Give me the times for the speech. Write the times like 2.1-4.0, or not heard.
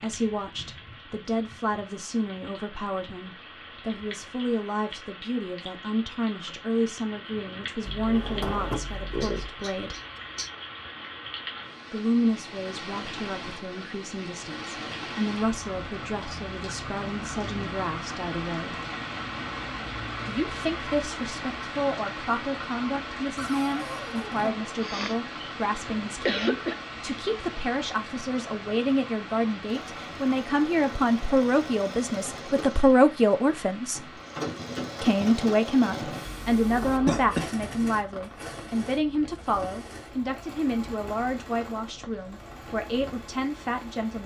0.0-10.0, 11.9-18.8, 20.2-34.0, 35.0-44.2.